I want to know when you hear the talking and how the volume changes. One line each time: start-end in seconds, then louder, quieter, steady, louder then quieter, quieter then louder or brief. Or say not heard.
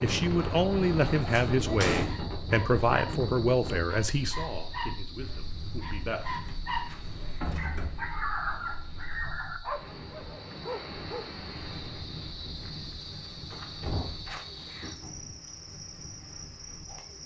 0.0-6.5 quieter.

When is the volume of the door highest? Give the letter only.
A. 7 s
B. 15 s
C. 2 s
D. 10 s
C.